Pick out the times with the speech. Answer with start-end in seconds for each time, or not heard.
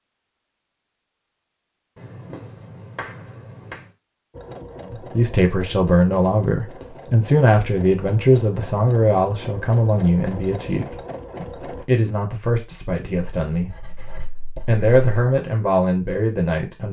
4.9-16.8.